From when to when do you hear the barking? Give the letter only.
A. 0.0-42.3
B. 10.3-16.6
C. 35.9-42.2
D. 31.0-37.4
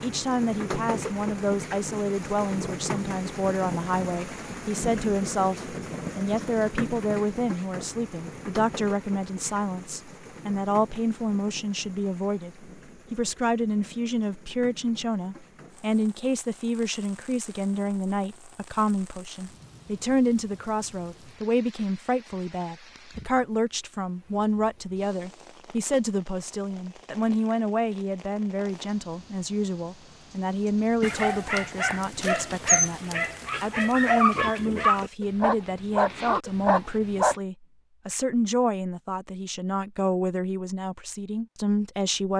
D.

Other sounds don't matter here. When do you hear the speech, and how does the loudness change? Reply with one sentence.
You can hear the speech from 0.0 to 42.3 s, at a steady volume.